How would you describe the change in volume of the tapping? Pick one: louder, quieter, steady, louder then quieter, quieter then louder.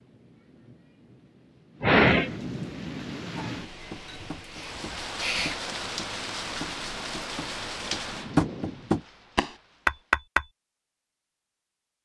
louder.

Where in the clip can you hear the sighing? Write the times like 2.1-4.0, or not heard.
1.8-2.3, 4.0-5.5, 8.1-8.9.